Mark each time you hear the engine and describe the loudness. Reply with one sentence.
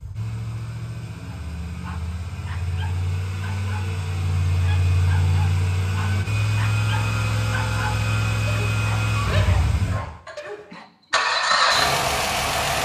The engine can be heard from 0.0 to 12.8 s, getting louder.